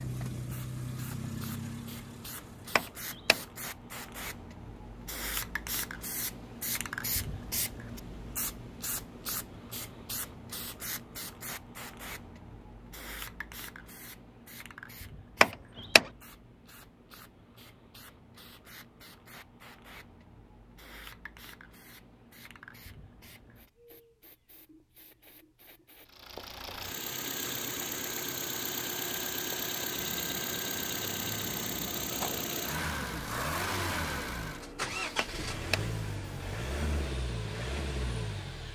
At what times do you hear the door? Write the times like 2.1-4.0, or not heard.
2.8-3.4, 15.4-16.1, 35.1-35.9.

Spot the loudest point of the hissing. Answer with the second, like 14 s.
7 s.